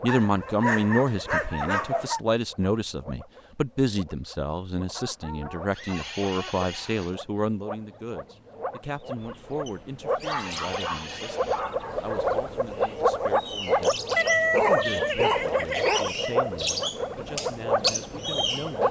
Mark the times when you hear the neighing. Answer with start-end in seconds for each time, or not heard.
5.7-7.2, 10.2-11.7.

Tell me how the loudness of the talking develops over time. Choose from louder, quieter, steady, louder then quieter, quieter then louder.
quieter.